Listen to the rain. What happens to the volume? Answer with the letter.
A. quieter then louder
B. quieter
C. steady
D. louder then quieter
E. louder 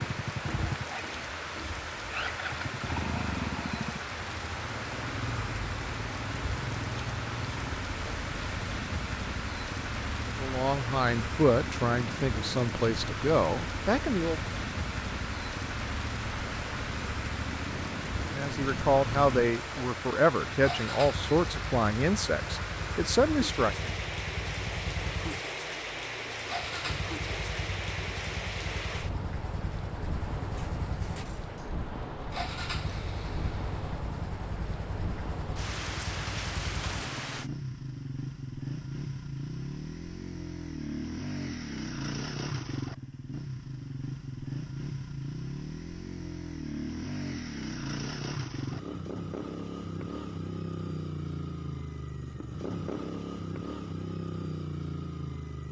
C.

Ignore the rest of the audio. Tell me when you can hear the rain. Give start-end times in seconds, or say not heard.
0.0-37.5.